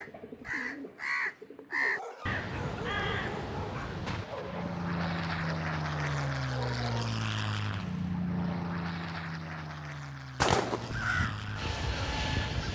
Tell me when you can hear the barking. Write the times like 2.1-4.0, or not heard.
1.8-7.2.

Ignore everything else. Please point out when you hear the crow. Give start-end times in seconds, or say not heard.
0.0-5.0, 10.4-12.7.